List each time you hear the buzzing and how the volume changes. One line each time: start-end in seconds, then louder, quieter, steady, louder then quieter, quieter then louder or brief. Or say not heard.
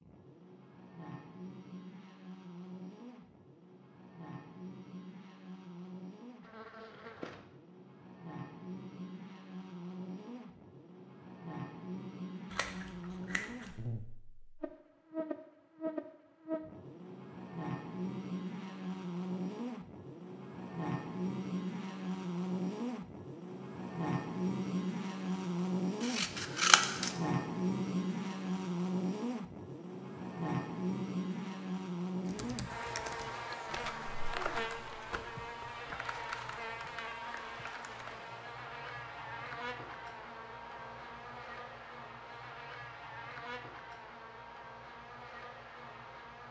0.0-46.4 louder then quieter.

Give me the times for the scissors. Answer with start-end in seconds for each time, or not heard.
12.5-13.8, 26.0-27.1.